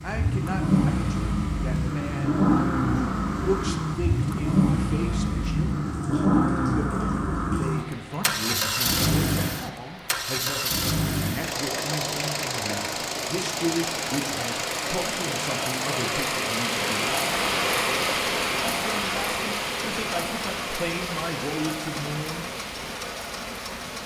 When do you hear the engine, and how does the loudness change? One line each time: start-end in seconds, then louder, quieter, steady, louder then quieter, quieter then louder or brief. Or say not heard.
0.0-24.0 quieter.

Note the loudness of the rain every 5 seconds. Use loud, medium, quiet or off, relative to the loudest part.
quiet, quiet, medium, loud, medium.